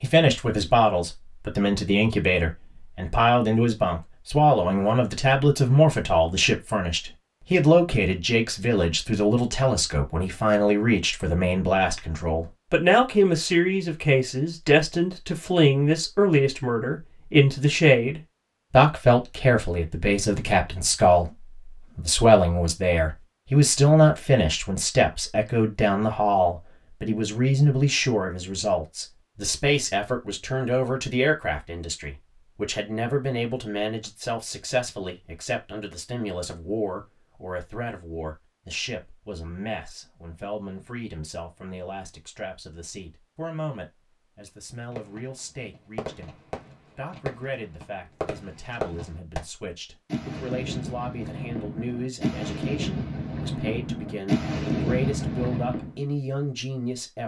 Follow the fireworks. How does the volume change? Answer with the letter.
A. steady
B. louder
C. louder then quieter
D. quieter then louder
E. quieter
B.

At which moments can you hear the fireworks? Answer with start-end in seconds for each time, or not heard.
44.9-55.9.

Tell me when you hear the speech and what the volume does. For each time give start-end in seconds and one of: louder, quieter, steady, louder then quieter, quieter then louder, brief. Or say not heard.
0.0-57.2 quieter.